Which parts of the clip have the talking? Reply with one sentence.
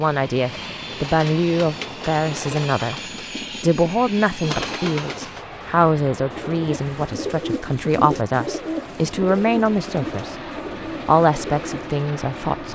The talking can be heard from 0.0 to 3.0 s, from 3.6 to 10.3 s and from 11.1 to 12.7 s.